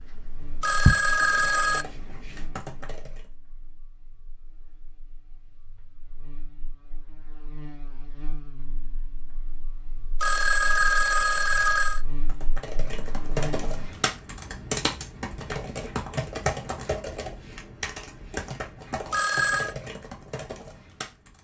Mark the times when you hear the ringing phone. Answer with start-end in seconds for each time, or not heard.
0.6-1.9, 10.2-12.0, 19.1-19.8.